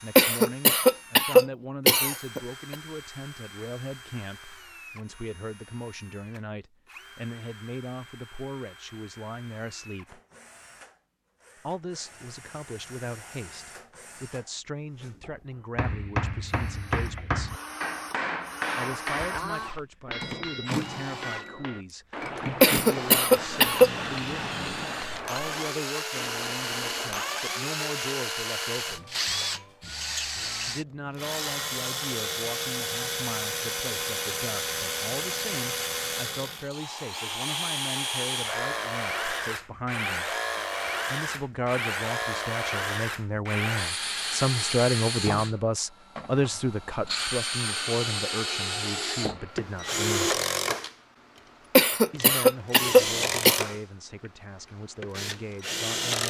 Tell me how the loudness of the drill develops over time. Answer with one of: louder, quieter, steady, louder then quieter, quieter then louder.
louder.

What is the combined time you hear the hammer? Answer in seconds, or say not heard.
12 s.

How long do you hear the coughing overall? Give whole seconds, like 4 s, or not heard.
6 s.